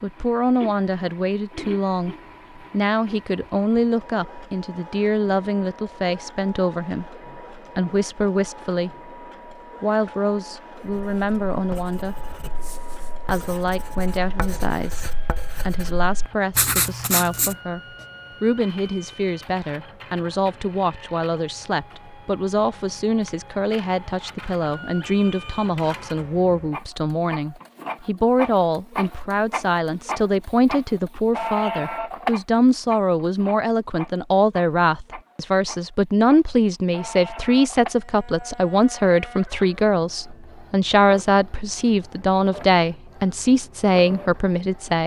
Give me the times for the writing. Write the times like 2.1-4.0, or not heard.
10.9-18.1.